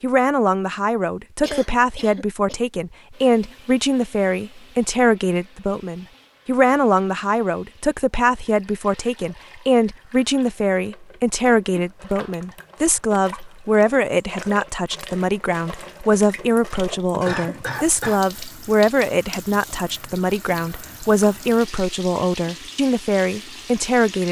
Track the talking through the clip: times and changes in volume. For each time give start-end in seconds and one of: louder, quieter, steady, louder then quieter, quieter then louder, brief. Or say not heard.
0.0-24.2 steady.